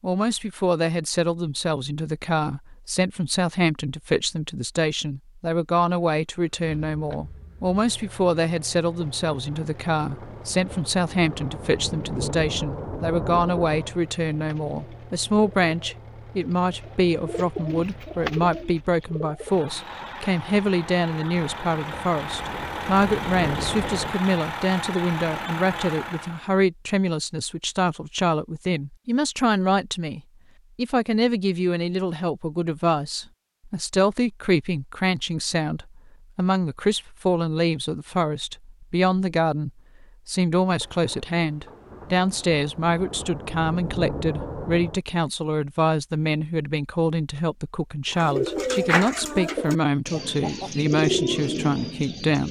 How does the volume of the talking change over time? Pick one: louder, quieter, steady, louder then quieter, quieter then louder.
steady.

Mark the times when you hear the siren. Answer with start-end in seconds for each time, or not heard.
not heard.